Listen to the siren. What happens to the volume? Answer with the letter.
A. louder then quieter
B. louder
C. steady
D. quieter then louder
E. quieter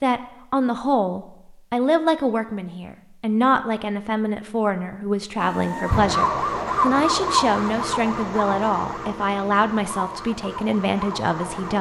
E.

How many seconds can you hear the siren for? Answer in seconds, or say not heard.
6 s.